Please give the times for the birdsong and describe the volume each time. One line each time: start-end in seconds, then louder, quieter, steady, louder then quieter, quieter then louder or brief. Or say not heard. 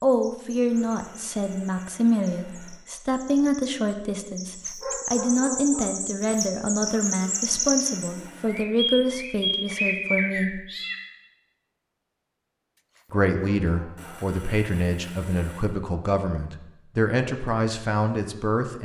0.0-10.9 louder.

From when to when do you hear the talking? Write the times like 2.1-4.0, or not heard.
0.0-10.6, 13.1-18.8.